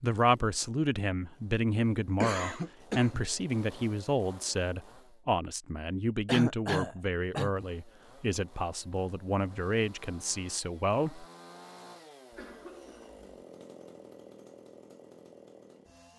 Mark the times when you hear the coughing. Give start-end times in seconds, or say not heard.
2.2-3.2, 6.2-7.5, 12.3-13.2.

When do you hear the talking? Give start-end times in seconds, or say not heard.
0.0-11.2.